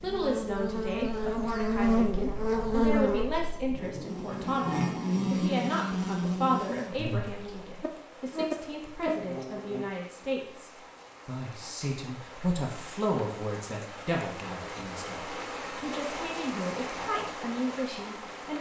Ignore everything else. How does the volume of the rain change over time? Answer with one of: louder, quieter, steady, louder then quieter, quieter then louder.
louder.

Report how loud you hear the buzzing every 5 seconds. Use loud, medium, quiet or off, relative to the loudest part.
loud, loud, off, off.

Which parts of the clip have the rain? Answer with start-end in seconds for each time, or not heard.
6.8-18.5.